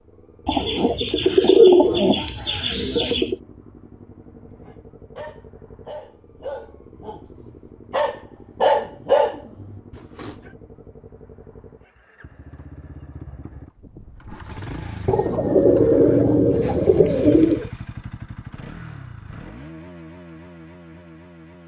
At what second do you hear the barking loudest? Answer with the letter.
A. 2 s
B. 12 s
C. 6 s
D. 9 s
D.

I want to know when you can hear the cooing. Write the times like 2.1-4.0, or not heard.
0.5-3.4, 15.1-17.6.